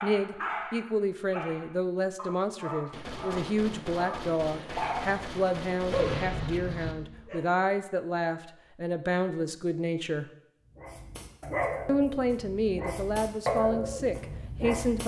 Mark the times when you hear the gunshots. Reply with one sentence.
The gunshots can be heard from 2.9 to 7.0 s.